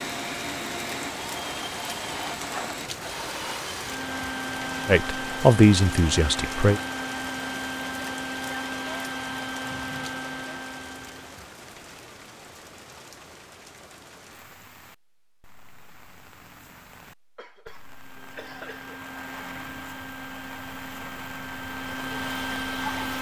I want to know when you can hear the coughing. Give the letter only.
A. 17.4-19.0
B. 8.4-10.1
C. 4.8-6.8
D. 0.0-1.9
A.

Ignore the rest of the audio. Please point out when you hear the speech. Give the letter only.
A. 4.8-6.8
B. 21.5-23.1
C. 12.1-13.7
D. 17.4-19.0
A.